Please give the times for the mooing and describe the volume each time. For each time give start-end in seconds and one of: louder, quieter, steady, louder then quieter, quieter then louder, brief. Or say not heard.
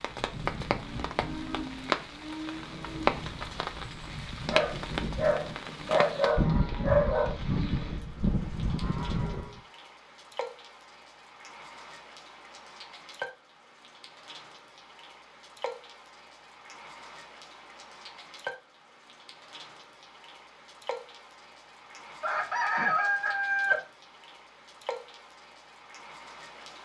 0.0-9.6 louder.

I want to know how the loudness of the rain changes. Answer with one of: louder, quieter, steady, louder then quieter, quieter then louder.
quieter.